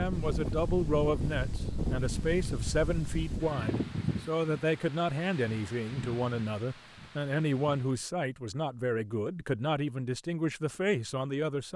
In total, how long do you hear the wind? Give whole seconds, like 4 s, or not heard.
8 s.